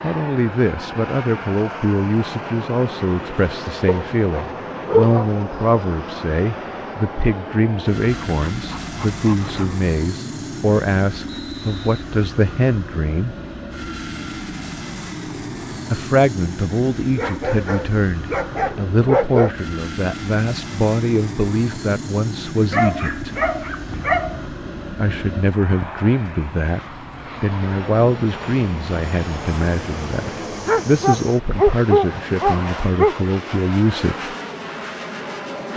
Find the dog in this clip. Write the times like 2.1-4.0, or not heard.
3.9-5.3, 8.0-9.8, 17.1-19.5, 22.7-24.4, 30.6-33.2.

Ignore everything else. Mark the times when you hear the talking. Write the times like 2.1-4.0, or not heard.
0.0-13.3, 15.9-23.3, 24.9-26.8, 27.4-34.3.